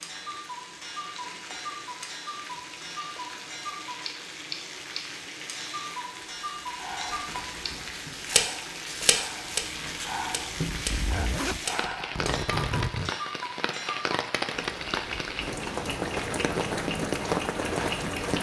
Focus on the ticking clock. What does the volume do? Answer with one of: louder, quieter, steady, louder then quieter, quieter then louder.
louder then quieter.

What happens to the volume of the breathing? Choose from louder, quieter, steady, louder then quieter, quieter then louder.
louder.